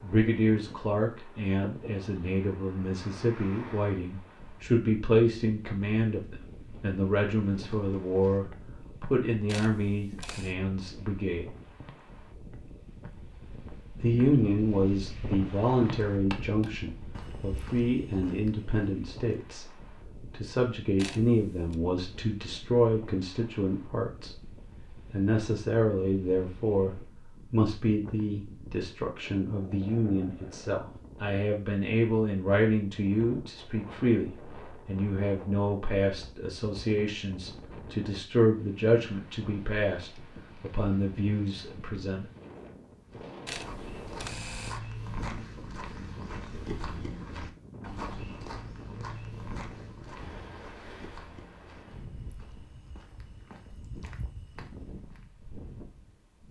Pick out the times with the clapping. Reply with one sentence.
You can't hear the clapping here.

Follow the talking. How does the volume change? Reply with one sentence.
The loudness of the talking stays about the same.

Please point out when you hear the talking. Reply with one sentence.
The talking can be heard from 0.0 to 11.5 s, from 14.0 to 19.7 s and from 20.3 to 42.2 s.